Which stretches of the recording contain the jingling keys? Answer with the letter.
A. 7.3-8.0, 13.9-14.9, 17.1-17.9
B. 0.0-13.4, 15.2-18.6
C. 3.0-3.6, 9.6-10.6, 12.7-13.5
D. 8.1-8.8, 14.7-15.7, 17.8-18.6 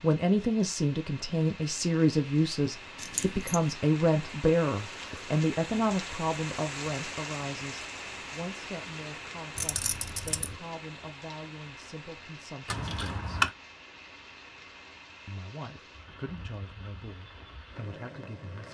C.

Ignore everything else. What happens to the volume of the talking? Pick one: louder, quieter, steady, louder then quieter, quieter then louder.
quieter.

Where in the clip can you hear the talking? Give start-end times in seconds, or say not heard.
0.0-13.4, 15.2-18.6.